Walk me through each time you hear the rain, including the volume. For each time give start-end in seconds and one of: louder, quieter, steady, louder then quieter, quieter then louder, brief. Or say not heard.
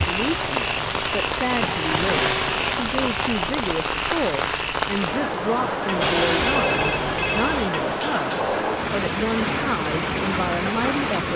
0.0-11.3 steady.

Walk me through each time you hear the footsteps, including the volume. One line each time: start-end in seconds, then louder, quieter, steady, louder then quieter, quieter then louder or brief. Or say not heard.
not heard.